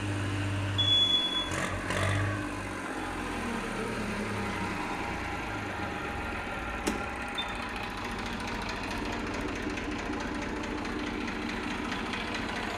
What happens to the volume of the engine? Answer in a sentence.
The loudness of the engine stays about the same.